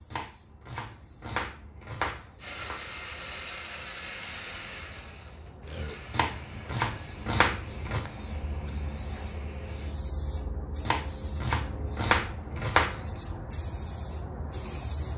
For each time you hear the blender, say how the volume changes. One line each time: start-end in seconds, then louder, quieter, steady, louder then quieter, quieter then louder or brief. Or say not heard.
2.4-9.9 quieter.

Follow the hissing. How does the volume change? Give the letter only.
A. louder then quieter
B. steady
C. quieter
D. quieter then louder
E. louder
E.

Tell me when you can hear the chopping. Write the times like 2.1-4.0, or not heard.
0.1-2.8, 6.1-8.1, 10.8-13.1.